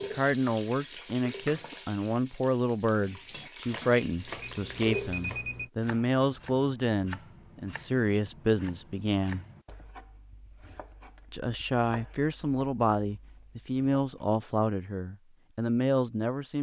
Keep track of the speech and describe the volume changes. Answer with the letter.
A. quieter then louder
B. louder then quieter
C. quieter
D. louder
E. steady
E.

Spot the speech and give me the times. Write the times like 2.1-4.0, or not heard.
0.0-9.4, 11.3-16.5.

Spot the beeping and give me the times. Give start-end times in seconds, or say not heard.
4.2-5.7.